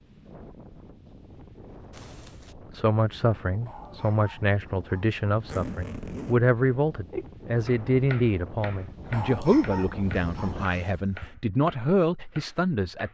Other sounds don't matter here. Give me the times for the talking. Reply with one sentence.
The talking can be heard from 2.7 to 13.1 s.